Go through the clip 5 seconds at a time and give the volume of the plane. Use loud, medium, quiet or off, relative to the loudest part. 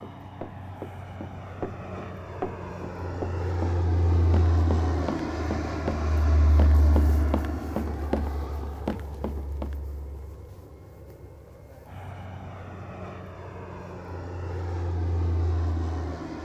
loud, loud, medium, loud.